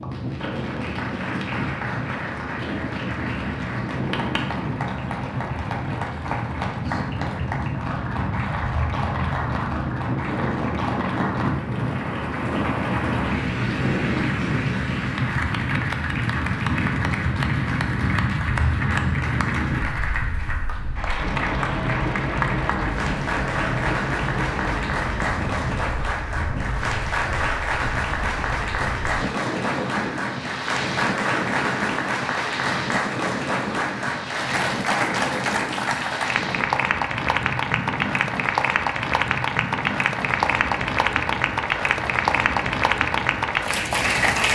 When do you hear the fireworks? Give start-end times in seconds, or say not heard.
not heard.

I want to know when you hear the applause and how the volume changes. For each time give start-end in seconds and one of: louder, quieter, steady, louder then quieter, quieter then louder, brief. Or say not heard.
0.0-44.4 louder.